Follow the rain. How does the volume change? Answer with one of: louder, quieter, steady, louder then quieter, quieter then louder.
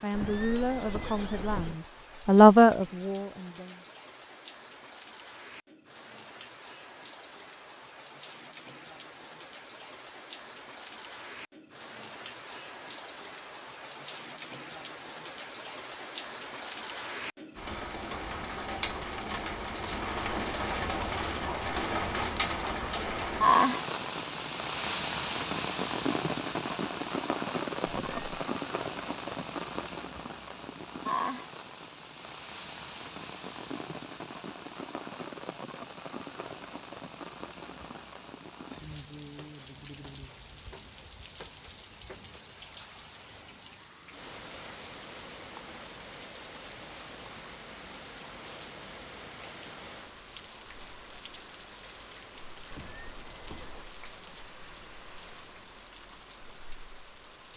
louder then quieter.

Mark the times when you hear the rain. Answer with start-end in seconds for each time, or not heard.
0.0-57.5.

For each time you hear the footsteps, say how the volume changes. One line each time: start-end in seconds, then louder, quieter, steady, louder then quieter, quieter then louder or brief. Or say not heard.
not heard.